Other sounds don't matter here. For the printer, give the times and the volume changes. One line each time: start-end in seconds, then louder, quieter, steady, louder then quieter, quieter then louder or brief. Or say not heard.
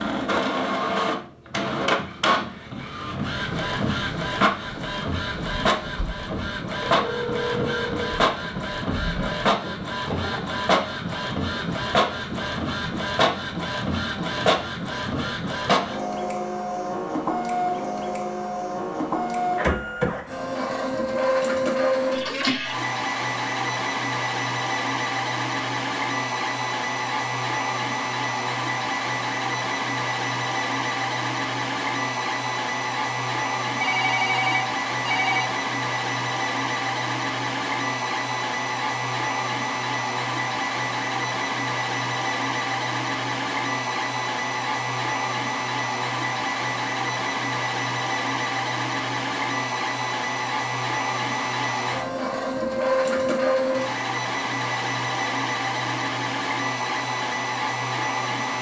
0.0-58.5 steady.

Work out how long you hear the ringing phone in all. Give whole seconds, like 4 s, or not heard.
3 s.